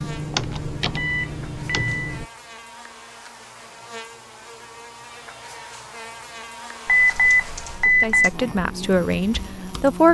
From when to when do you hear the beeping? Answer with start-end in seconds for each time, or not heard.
0.9-2.1, 6.8-8.3.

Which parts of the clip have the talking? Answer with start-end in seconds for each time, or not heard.
7.8-10.0.